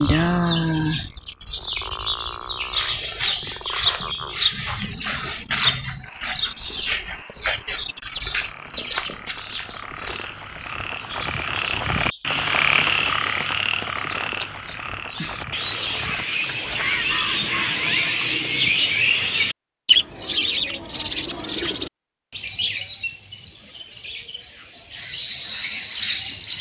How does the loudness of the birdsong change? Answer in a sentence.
The volume of the birdsong goes down, then up.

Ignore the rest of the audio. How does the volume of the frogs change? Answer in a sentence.
The volume of the frogs goes up, then down.